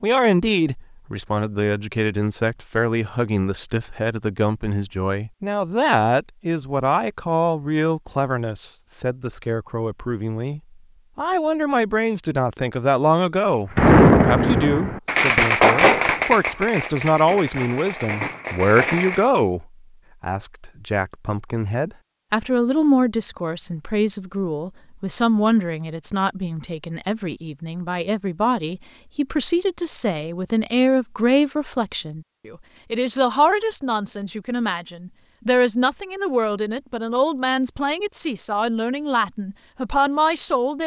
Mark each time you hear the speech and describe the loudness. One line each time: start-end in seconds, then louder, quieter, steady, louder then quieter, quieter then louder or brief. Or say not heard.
0.0-40.8 steady.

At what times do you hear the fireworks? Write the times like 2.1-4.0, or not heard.
13.8-19.2.